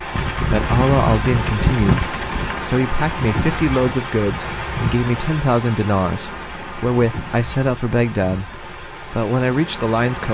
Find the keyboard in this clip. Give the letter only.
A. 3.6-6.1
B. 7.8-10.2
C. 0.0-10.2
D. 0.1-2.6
D.